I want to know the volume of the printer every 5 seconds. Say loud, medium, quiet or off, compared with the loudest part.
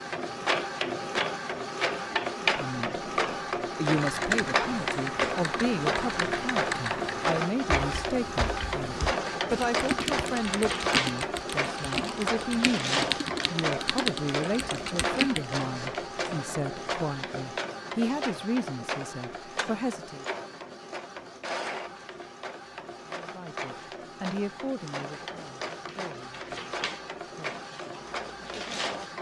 loud, loud, loud, medium, medium, medium.